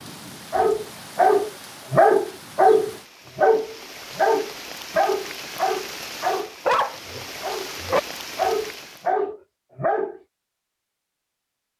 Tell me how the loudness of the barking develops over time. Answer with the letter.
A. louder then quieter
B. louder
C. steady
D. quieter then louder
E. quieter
E.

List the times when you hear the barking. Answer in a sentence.
The barking can be heard from 0.5 to 10.2 s.